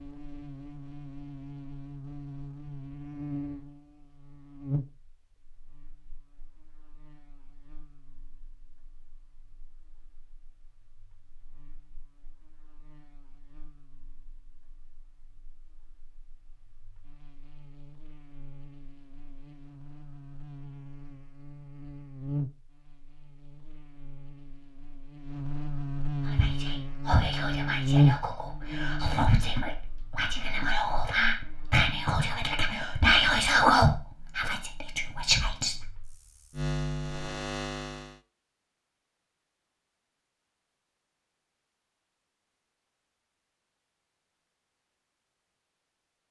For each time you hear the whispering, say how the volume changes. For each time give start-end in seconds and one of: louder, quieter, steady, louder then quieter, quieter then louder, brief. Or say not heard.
26.2-35.8 louder.